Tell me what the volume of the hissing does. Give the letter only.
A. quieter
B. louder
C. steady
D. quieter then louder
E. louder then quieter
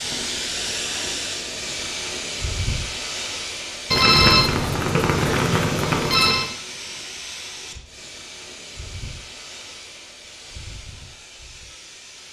A.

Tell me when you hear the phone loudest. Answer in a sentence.
The loudest moment of the phone is at 4 seconds.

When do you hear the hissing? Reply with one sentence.
The hissing can be heard from 0.0 to 12.2 s.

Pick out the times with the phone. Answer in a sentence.
The phone can be heard from 3.9 to 6.5 s.